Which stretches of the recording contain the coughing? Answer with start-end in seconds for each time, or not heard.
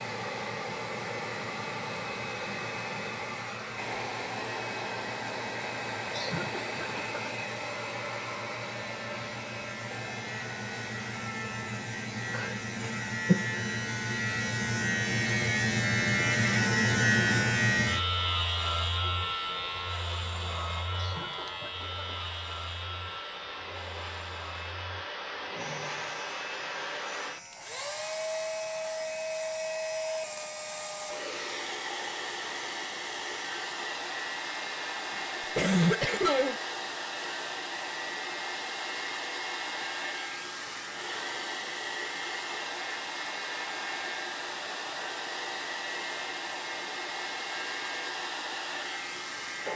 6.1-7.3, 20.9-22.1, 35.5-36.5.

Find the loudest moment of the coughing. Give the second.
36 s.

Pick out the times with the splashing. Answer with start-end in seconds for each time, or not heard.
not heard.